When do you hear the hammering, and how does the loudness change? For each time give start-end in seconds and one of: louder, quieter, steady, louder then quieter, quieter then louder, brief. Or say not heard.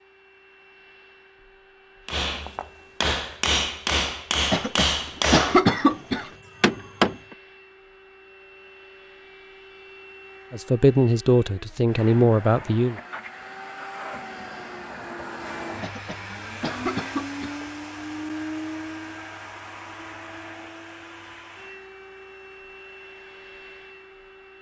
2.0-7.3 steady.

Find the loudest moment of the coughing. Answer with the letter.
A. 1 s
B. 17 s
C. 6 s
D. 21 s
C.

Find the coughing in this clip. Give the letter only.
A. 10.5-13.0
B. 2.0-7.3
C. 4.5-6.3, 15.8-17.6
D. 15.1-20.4
C.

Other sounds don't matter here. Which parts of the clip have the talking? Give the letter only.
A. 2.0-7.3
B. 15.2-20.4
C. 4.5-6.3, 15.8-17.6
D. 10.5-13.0
D.